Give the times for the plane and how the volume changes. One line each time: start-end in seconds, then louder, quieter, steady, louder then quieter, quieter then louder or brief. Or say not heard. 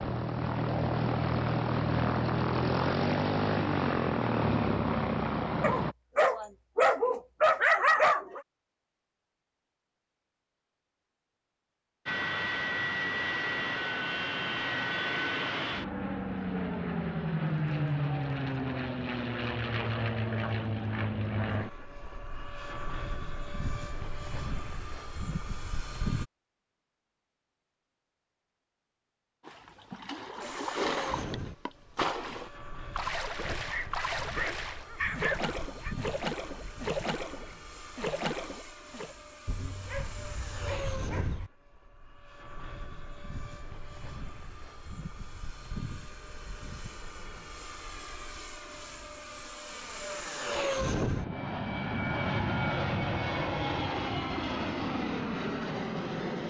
0.0-6.0 steady
12.1-26.2 quieter
30.4-56.4 louder.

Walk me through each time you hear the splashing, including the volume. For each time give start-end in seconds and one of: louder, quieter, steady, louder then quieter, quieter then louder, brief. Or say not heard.
29.4-39.1 steady.